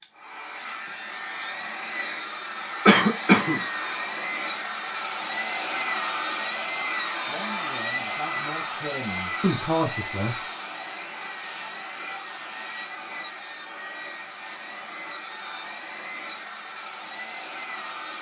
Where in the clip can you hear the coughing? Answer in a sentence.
You can hear the coughing from 2.9 to 4.0 s.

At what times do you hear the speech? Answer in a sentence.
You can hear the speech from 7.2 to 10.3 s.